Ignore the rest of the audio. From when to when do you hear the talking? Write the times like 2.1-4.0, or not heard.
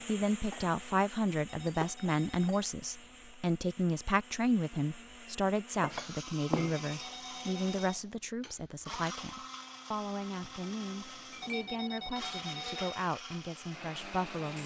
0.1-14.6.